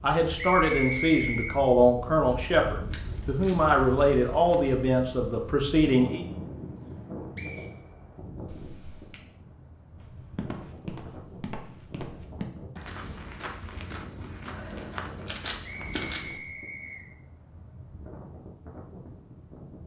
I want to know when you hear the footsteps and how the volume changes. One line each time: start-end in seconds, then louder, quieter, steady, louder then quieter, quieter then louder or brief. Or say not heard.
9.9-16.6 steady.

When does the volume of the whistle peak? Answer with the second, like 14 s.
1 s.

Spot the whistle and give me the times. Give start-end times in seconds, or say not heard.
0.3-1.6, 7.3-8.4, 15.6-17.1.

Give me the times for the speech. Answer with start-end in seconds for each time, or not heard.
0.0-6.2.